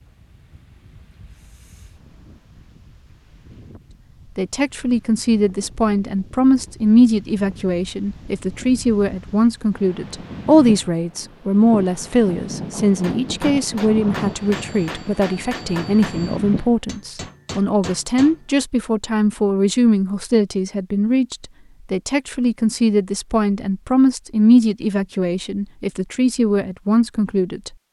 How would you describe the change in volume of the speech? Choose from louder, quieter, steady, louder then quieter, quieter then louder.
steady.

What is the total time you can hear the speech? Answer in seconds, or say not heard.
23 s.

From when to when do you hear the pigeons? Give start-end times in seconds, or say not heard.
not heard.